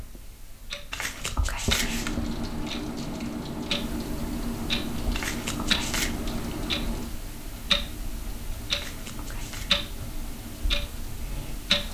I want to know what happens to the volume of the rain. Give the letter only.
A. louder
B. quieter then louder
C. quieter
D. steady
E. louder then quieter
C.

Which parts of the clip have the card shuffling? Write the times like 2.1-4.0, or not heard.
0.9-2.1, 5.1-6.2, 8.7-9.8.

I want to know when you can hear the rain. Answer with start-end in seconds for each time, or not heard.
1.8-11.9.